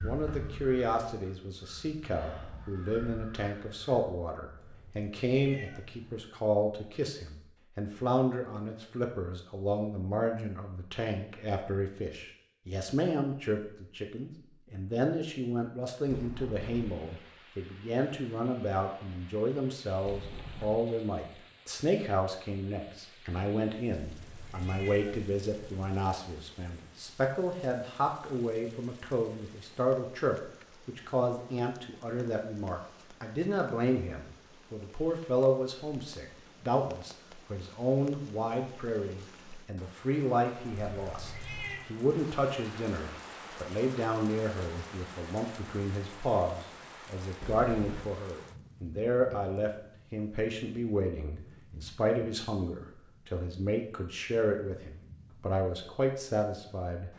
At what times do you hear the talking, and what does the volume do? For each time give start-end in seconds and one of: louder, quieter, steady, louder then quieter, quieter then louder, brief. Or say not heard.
0.0-57.1 steady.